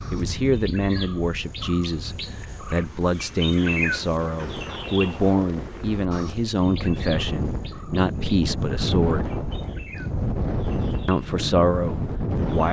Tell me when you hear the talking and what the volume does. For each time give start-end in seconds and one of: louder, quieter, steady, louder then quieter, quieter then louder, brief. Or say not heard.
0.1-9.3 steady
11.1-12.6 brief.